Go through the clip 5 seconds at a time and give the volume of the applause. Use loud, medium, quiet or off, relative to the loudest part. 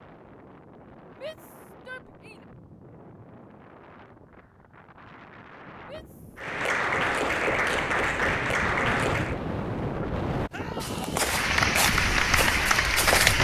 off, loud, loud.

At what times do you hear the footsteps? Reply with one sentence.
You can hear the footsteps from 10.8 to 13.3 s.